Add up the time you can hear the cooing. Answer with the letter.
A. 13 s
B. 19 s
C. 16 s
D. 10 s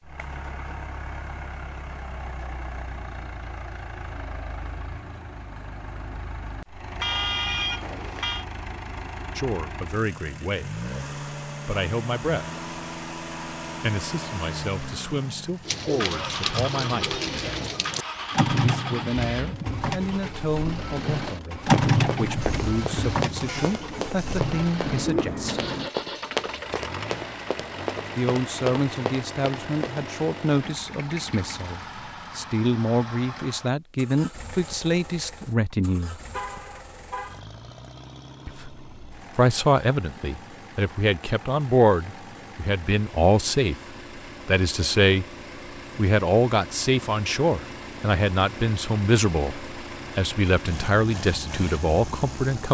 D.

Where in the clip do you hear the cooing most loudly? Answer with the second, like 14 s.
22 s.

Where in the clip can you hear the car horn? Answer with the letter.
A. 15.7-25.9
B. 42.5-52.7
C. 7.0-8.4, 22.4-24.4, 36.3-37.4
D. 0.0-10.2
C.